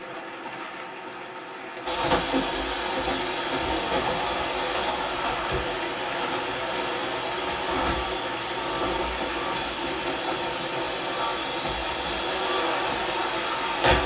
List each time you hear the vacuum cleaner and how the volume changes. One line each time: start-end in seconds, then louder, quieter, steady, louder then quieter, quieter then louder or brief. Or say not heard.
1.9-14.0 steady.